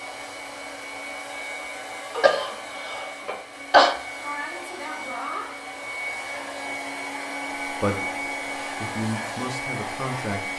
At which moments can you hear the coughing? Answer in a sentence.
The coughing can be heard from 2.1 to 4.0 s.